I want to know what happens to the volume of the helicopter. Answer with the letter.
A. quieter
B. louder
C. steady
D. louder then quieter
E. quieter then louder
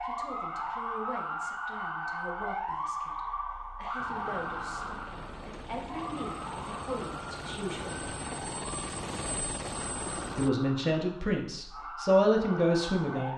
B.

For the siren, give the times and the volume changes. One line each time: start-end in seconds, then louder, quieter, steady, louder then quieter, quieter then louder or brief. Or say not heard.
0.0-13.3 quieter.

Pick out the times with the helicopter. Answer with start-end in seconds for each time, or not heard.
4.0-10.5.